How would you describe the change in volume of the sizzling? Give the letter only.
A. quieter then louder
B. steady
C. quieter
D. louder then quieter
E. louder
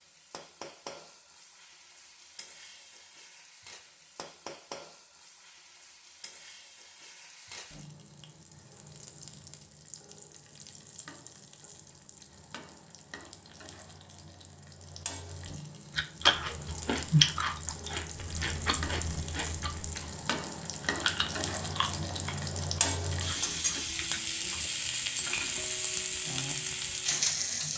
E.